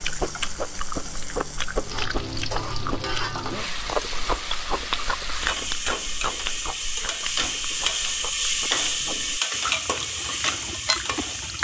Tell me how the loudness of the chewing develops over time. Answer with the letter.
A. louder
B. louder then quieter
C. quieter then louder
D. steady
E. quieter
C.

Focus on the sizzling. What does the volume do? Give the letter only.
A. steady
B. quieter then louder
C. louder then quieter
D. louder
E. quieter
D.